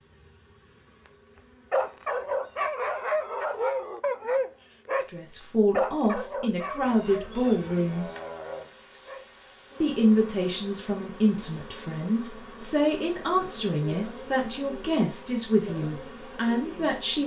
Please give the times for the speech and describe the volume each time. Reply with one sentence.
The speech can be heard briefly from 5.1 to 8.1 s; and from 9.8 to 17.2 s, at a steady volume.